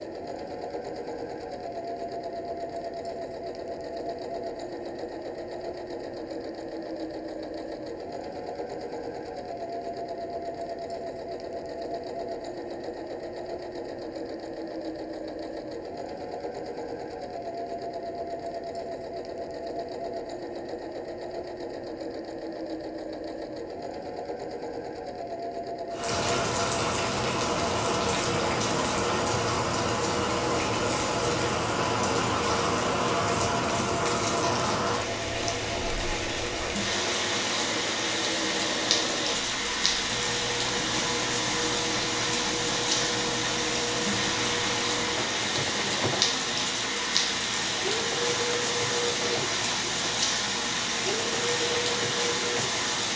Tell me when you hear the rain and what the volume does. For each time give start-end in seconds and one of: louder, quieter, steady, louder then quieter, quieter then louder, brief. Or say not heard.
25.9-53.1 steady.